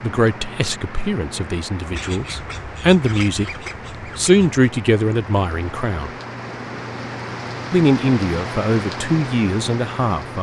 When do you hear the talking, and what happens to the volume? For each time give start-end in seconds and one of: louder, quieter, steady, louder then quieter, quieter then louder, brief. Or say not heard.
0.0-6.1 louder then quieter
7.7-10.3 brief.